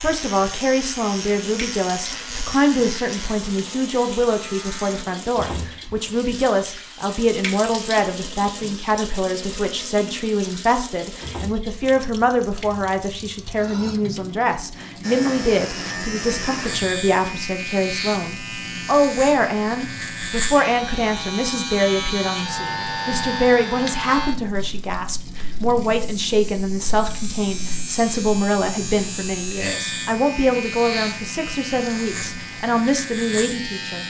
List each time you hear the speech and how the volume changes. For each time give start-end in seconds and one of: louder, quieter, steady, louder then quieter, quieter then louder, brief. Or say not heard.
0.0-34.0 steady.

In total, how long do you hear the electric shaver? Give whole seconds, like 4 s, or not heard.
24 s.